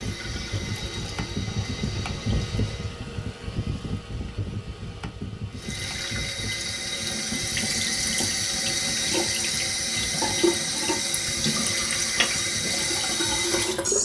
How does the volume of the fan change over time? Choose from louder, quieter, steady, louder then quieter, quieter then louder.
quieter.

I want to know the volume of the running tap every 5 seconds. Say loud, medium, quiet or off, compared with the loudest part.
quiet, loud, loud.